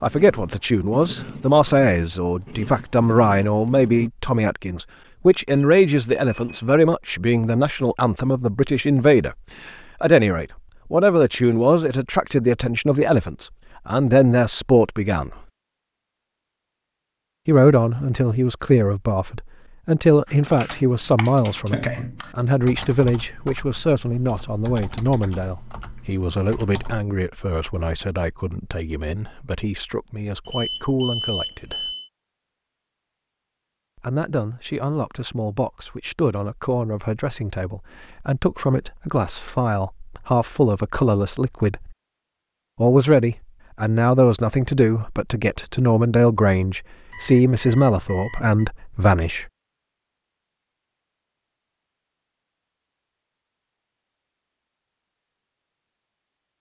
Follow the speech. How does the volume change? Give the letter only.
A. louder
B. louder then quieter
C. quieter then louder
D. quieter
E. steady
C.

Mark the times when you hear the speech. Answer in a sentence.
The speech can be heard from 0.0 to 15.3 s, from 17.4 to 31.9 s, from 34.0 to 42.0 s and from 42.8 to 49.5 s.